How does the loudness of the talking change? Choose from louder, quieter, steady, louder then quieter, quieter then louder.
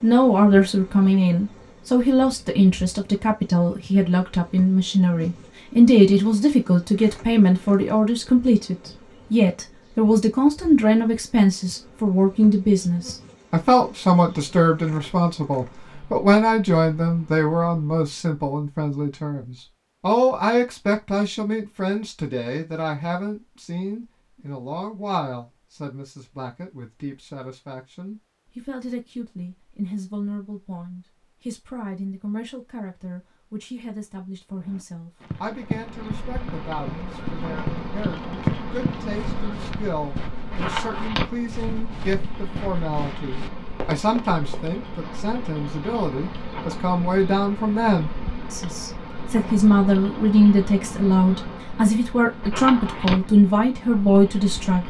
quieter then louder.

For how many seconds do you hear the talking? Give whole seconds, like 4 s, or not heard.
55 s.